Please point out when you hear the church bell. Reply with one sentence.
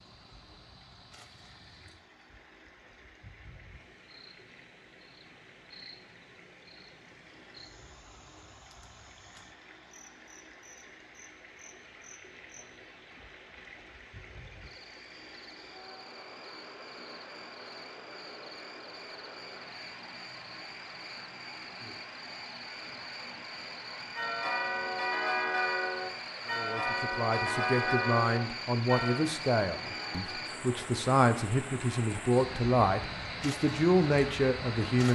You can hear the church bell from 24.1 to 30.4 s.